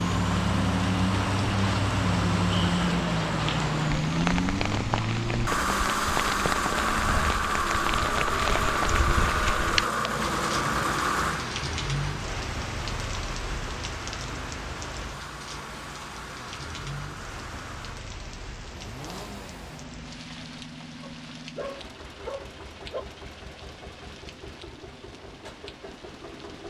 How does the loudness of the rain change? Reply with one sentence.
The loudness of the rain goes down.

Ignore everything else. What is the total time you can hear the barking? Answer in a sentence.
The barking can be heard for 2 seconds in total.